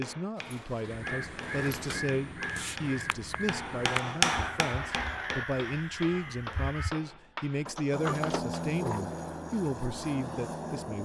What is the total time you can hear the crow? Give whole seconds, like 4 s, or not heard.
6 s.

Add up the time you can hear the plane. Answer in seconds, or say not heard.
3 s.